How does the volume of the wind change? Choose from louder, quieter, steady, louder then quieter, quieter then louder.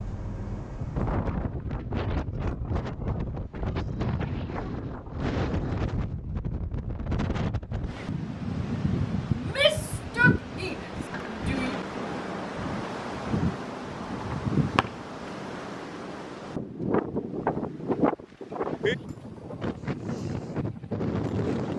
steady.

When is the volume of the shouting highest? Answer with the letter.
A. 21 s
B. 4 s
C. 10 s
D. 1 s
C.